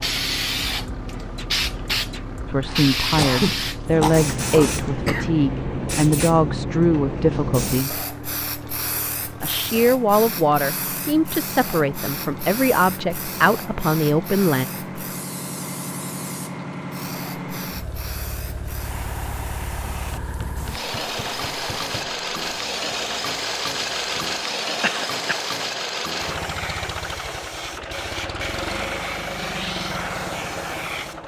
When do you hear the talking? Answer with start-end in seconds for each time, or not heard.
2.5-8.1, 9.4-14.7.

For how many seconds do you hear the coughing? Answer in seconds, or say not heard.
3 s.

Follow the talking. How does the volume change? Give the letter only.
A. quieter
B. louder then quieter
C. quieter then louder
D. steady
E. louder
D.